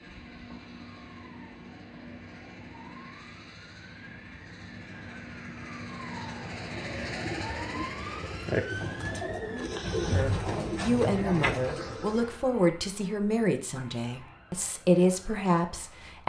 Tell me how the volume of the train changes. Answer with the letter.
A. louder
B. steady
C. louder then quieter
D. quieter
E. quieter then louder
A.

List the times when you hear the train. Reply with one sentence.
The train can be heard from 0.0 to 9.3 s.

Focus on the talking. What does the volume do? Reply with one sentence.
The volume of the talking goes down, then up.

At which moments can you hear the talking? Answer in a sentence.
You can hear the talking from 10.1 to 16.2 s.